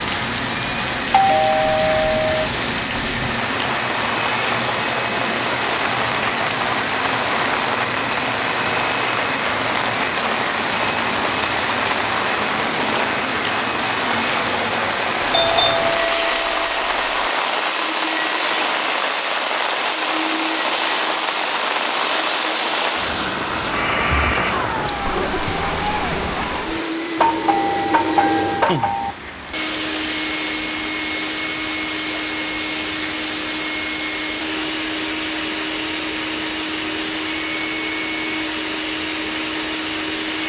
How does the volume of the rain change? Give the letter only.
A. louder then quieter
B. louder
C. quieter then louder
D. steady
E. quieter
E.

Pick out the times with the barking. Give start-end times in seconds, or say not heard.
not heard.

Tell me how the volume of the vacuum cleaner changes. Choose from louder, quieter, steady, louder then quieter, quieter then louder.
steady.